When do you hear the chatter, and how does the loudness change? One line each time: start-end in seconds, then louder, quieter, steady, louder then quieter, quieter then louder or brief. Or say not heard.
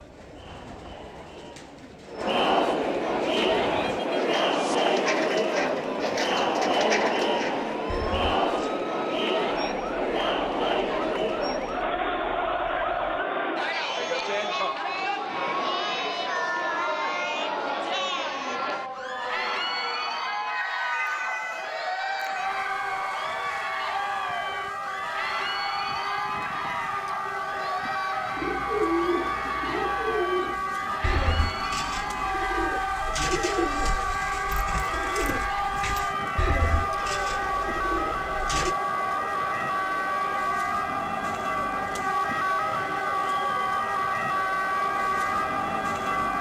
0.0-46.1 quieter.